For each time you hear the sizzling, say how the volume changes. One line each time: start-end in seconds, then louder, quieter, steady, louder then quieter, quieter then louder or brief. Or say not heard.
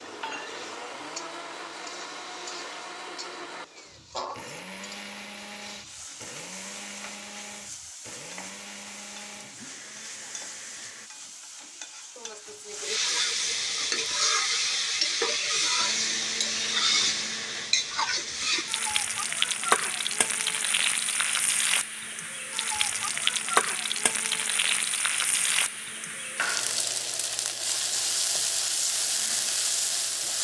0.0-30.4 louder.